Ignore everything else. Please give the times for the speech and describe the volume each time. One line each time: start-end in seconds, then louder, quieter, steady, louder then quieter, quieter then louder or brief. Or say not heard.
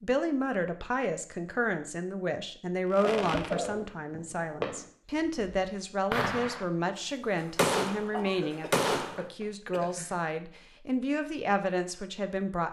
0.0-12.6 steady.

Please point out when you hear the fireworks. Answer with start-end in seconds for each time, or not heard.
2.9-6.7, 7.4-9.2.